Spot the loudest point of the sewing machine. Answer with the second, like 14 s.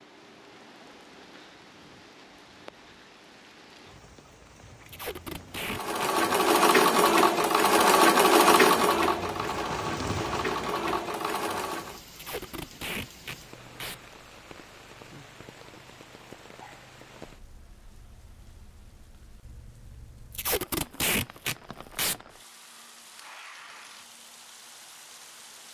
8 s.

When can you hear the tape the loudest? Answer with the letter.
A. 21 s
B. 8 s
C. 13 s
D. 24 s
A.